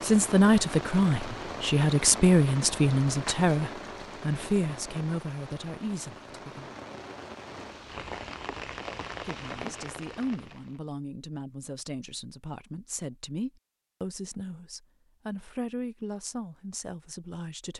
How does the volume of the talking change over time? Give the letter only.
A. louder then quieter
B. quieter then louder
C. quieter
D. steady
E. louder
C.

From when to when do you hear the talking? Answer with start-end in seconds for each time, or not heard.
0.0-6.7, 9.2-17.7.